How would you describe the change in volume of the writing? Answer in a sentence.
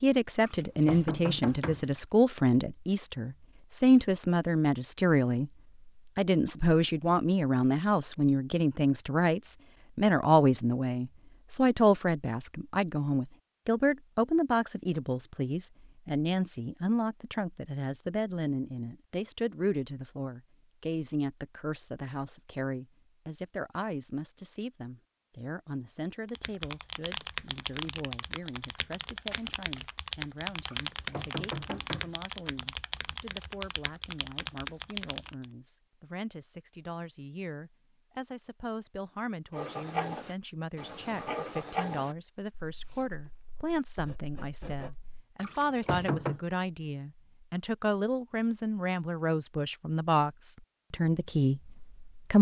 The volume of the writing goes down, then up.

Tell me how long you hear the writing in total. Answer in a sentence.
You can hear the writing for 6 seconds altogether.